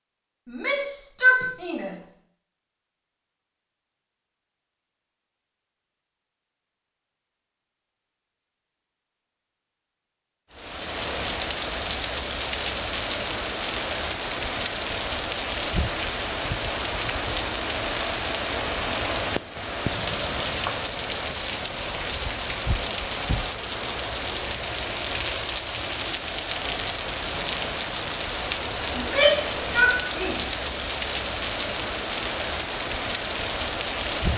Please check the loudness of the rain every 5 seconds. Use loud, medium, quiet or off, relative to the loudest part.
off, off, loud, loud, loud, loud, loud.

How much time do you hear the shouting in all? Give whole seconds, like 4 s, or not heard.
3 s.